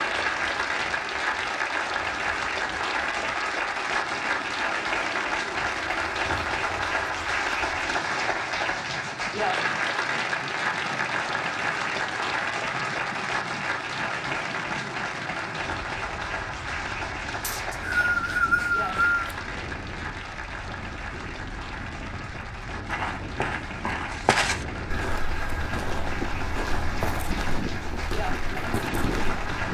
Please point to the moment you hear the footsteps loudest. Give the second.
24 s.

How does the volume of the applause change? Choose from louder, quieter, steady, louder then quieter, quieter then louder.
quieter.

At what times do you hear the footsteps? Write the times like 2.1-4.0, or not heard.
22.9-29.4.